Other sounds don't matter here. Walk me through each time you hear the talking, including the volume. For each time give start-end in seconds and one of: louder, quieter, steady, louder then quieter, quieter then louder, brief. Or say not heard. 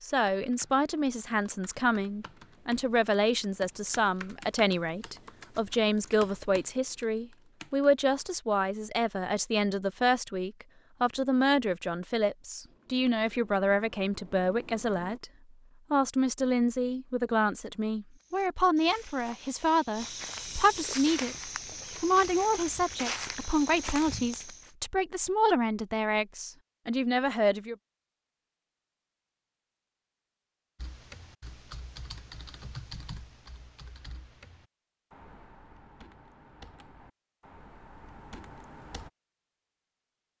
0.0-15.2 steady
15.9-27.8 steady.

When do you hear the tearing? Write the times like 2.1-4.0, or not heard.
not heard.